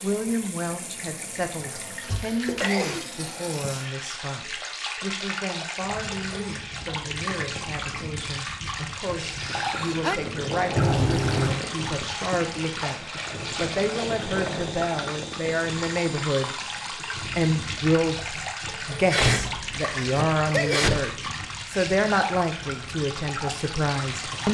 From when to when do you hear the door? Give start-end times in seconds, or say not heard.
2.0-2.8, 10.8-11.6, 19.1-21.1.